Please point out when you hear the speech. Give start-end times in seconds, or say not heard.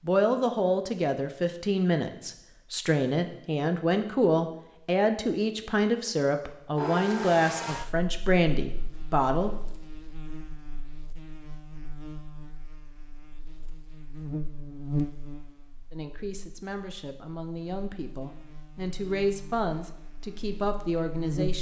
0.0-9.5, 15.9-21.5.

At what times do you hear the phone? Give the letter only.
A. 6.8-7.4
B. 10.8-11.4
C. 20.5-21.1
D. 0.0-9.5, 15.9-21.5
A.